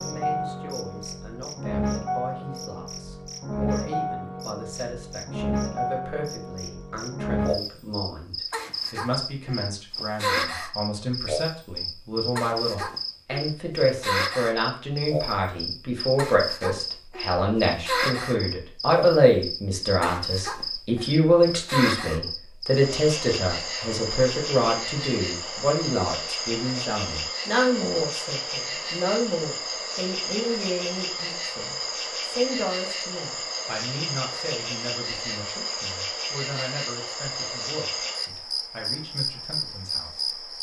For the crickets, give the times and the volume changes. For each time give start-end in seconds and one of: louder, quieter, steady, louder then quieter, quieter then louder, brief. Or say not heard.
0.0-40.5 steady.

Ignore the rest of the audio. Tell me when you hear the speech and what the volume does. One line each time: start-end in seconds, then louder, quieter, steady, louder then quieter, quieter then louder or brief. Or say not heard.
0.0-40.4 louder then quieter.